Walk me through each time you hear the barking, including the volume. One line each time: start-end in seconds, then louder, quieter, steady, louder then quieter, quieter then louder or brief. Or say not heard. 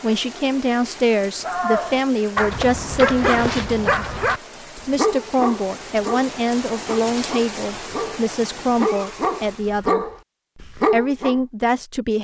1.4-11.3 quieter then louder.